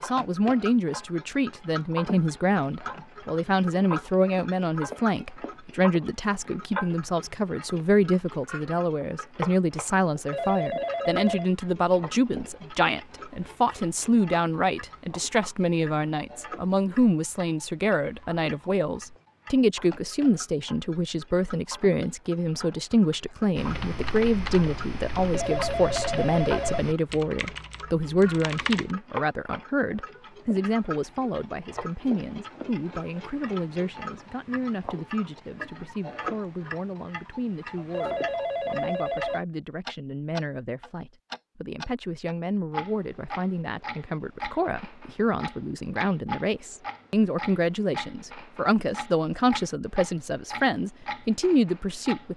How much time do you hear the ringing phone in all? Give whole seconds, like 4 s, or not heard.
4 s.